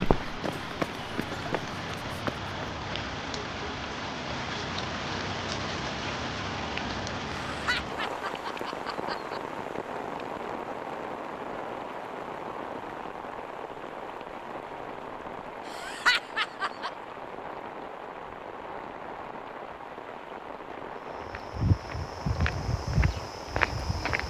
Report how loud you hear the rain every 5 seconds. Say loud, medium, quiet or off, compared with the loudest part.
loud, loud, loud, medium, medium.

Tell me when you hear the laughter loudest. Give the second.
16 s.